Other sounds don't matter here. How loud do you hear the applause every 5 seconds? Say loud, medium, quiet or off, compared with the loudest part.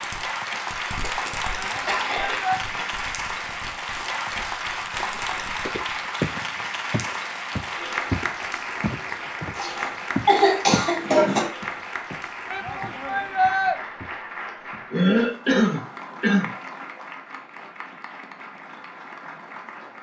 loud, loud, medium, medium.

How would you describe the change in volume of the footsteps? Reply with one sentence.
The loudness of the footsteps goes down.